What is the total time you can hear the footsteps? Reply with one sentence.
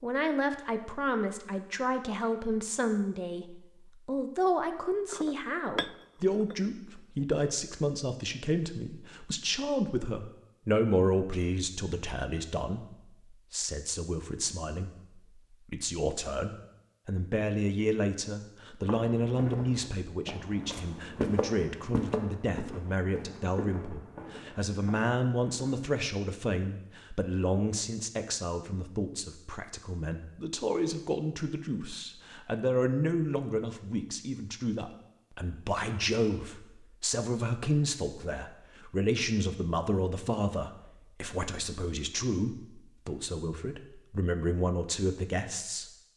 You can hear the footsteps for 7 seconds altogether.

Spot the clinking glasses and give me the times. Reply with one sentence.
The clinking glasses can be heard from 5.0 to 6.5 s.